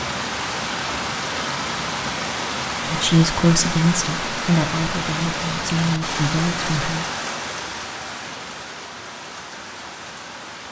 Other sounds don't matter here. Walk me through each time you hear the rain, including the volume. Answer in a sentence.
You can hear the rain from 0.0 to 10.6 s, getting quieter.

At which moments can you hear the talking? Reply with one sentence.
The talking can be heard from 2.9 to 7.0 s.